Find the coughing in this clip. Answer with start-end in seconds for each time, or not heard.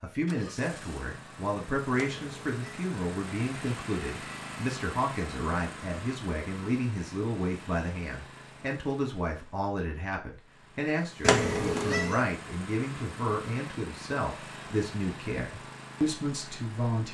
not heard.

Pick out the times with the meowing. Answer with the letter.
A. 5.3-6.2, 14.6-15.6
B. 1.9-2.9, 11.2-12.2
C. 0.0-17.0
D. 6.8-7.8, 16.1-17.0
B.